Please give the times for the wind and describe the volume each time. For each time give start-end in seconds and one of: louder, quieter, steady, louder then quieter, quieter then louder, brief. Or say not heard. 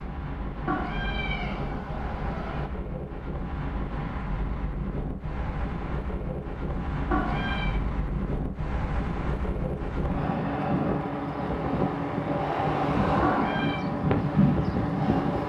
0.0-15.4 louder.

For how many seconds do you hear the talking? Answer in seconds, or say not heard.
not heard.